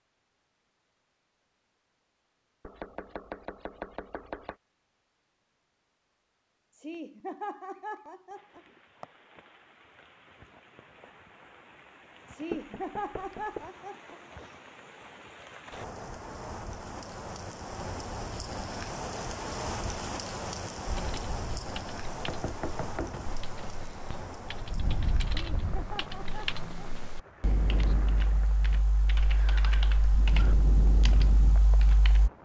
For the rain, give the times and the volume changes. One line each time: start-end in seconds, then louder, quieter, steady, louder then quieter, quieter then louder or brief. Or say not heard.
8.3-32.4 louder then quieter.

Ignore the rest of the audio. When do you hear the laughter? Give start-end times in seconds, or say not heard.
6.8-9.1, 12.3-14.2, 25.2-26.6.